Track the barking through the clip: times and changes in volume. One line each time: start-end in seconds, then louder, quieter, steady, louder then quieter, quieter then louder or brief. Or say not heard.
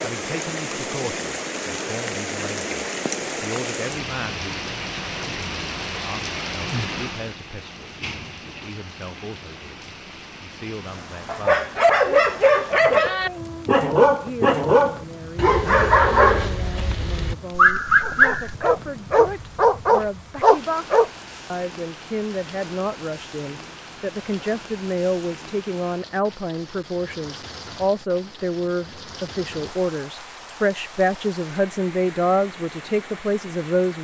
11.2-21.1 steady.